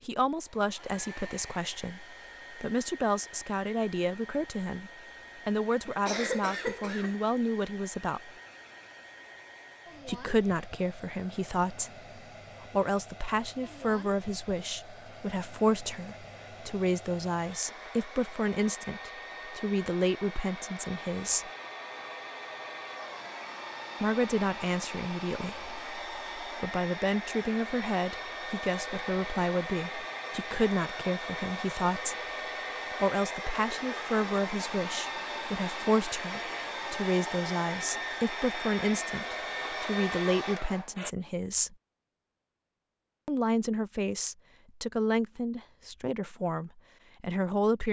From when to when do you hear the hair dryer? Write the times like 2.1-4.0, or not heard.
0.1-41.1.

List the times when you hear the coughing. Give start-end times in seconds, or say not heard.
5.8-7.2.